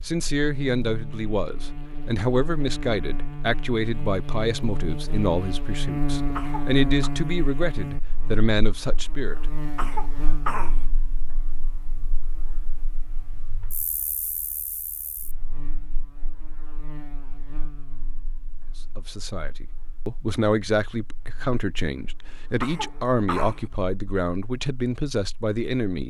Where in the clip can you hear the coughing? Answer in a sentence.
You can hear the coughing from 6.3 to 7.2 s, from 9.8 to 10.8 s and from 22.6 to 23.6 s.